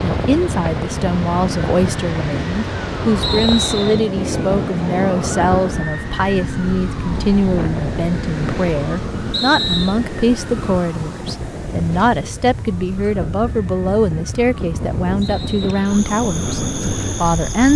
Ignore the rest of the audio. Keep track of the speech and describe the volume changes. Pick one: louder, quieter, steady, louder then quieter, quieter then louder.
steady.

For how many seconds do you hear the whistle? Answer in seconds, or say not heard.
2 s.